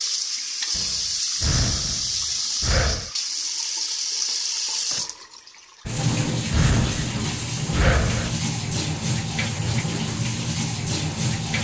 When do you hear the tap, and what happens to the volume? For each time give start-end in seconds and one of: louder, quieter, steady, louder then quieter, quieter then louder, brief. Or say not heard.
0.0-11.5 steady.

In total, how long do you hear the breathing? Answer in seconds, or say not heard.
5 s.